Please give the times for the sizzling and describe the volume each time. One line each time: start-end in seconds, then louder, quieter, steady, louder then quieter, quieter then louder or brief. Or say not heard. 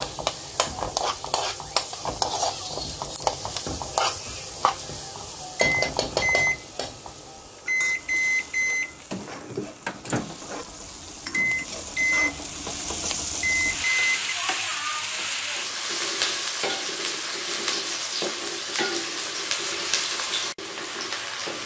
0.0-21.6 quieter then louder.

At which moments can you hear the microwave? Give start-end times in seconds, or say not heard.
4.6-14.3.